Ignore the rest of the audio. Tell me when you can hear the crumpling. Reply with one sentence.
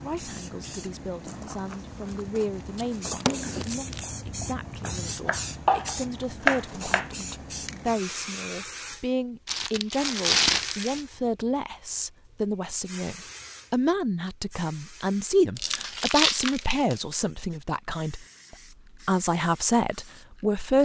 You can hear the crumpling from 2.8 to 4.0 s, from 9.4 to 11.1 s and from 15.6 to 16.9 s.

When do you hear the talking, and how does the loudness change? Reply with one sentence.
The talking can be heard from 0.0 to 18.2 s, getting louder; and briefly from 19.1 to 20.7 s.